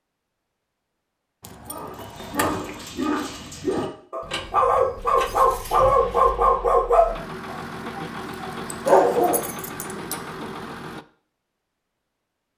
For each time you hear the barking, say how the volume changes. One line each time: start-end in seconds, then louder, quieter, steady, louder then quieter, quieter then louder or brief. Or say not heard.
1.6-9.5 louder.